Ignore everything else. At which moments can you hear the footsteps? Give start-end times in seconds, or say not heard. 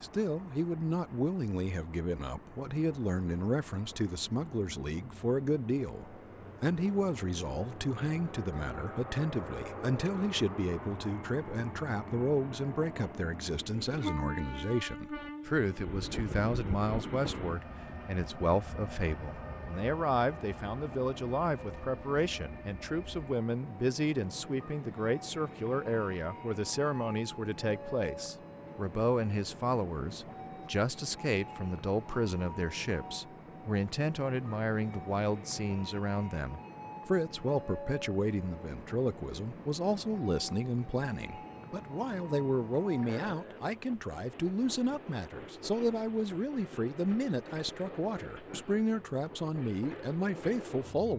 not heard.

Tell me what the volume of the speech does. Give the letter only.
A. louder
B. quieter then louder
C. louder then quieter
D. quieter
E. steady
E.